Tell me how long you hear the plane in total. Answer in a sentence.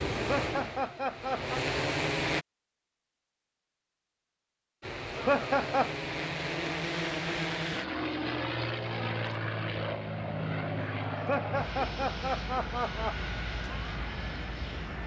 You can hear the plane for 13 seconds altogether.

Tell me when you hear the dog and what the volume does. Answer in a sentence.
The dog can't be heard in this clip.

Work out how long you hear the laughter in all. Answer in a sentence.
You can hear the laughter for 4 seconds altogether.